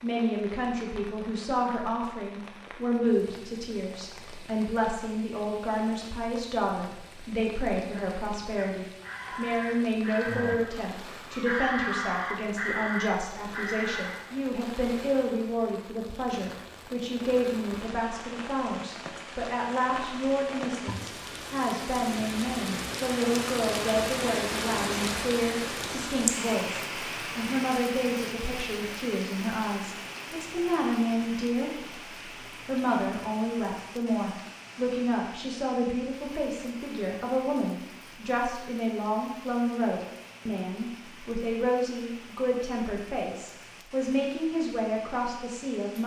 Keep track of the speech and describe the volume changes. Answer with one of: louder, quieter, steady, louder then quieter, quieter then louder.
steady.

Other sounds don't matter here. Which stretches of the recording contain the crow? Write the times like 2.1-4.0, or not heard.
8.6-14.3.